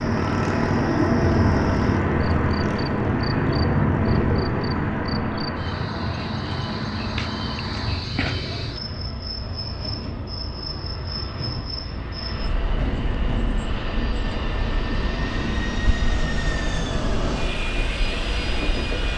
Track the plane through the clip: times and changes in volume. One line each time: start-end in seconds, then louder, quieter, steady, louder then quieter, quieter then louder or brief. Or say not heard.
0.0-19.1 quieter then louder.